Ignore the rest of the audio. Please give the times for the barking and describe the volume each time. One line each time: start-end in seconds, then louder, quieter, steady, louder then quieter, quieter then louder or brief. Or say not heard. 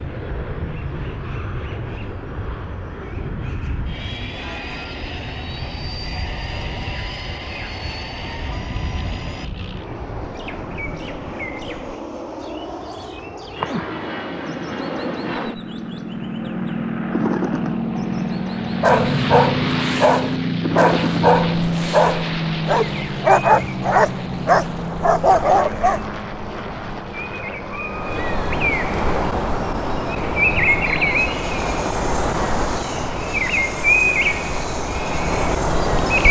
18.8-26.1 steady.